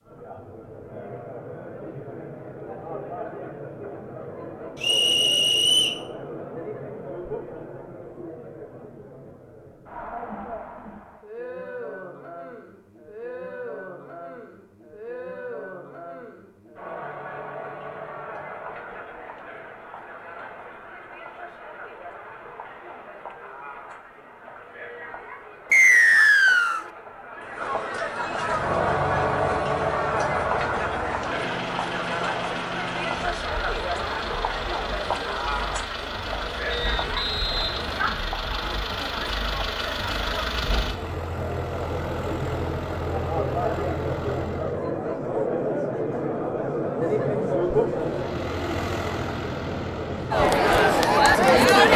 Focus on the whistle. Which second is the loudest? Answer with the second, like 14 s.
26 s.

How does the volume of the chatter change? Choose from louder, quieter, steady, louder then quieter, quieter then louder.
louder.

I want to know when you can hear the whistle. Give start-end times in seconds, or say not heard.
4.8-6.0, 25.7-26.9, 36.7-38.2.